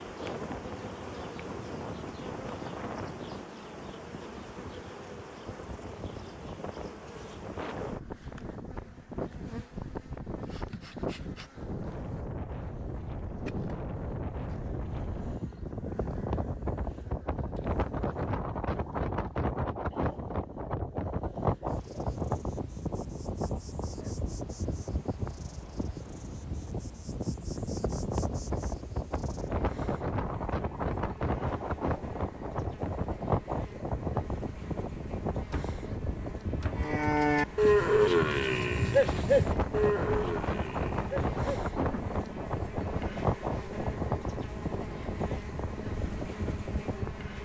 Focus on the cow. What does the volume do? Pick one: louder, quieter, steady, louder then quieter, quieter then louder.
quieter.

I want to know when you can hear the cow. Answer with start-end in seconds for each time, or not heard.
36.8-42.1.